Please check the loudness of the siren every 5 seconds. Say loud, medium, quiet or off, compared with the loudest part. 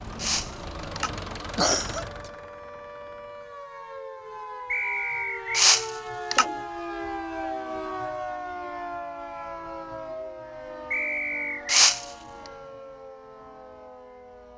medium, loud, medium.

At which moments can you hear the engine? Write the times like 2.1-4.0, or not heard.
0.0-3.7.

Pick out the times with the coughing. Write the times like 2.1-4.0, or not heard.
0.1-2.3, 5.5-6.5, 11.7-12.1.